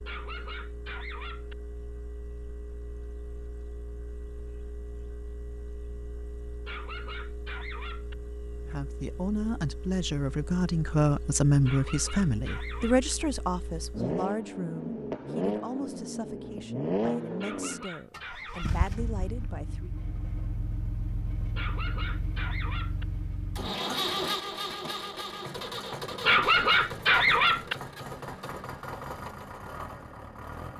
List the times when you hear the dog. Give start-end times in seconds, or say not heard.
0.1-1.6, 6.7-8.2, 11.6-13.2, 17.4-18.9, 21.6-23.1, 26.2-27.8.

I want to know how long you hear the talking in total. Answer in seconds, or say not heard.
11 s.